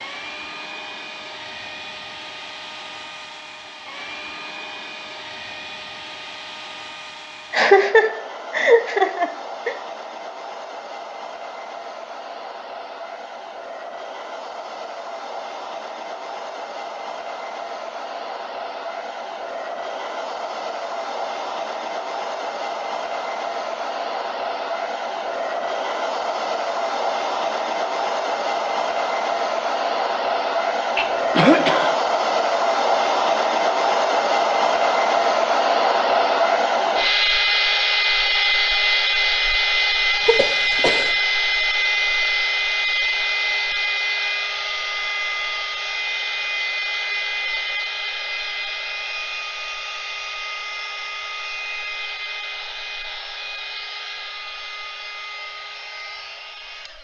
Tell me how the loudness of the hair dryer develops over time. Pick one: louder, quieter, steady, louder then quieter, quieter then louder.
louder then quieter.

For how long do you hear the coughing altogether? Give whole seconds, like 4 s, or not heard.
4 s.